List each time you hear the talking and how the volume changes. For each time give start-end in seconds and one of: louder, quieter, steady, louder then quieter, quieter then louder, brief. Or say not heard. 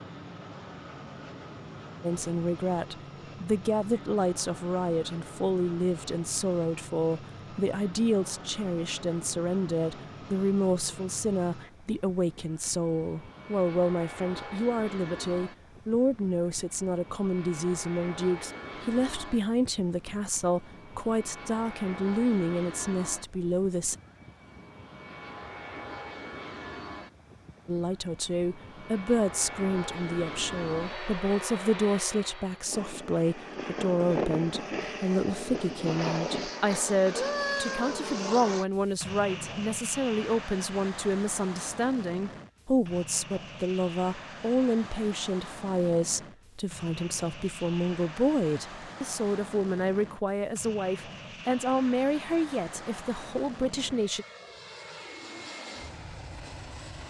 2.0-23.9 steady
27.6-54.2 steady.